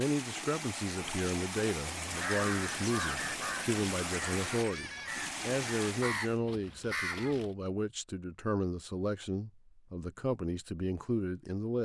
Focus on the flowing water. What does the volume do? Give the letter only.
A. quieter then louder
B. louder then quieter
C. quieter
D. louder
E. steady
E.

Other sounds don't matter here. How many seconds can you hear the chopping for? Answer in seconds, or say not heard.
not heard.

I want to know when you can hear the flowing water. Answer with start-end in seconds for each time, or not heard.
0.0-6.4.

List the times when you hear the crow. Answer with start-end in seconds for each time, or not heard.
2.0-7.5.